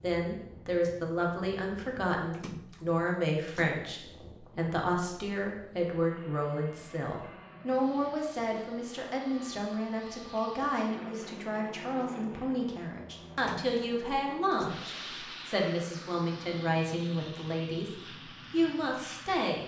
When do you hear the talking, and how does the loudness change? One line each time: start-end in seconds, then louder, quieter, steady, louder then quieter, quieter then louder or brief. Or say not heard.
0.0-19.6 steady.